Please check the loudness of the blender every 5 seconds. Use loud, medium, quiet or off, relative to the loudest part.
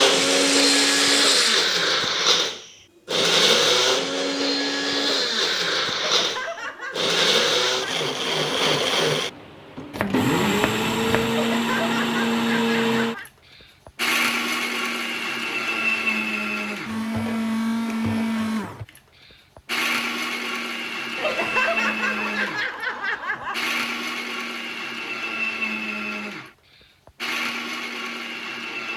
loud, loud, loud, medium, medium, medium.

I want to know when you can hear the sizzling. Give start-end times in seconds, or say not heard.
0.0-1.6.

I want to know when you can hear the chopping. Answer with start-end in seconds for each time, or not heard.
9.9-11.3.